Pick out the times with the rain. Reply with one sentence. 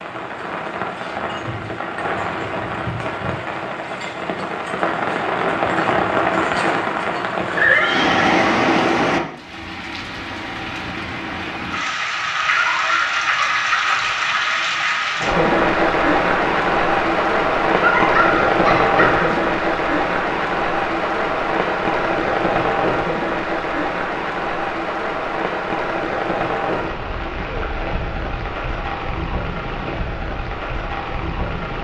The rain can be heard from 0.0 to 31.7 s.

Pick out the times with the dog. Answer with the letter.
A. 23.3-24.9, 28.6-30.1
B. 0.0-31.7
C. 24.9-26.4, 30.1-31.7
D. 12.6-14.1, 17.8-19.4
D.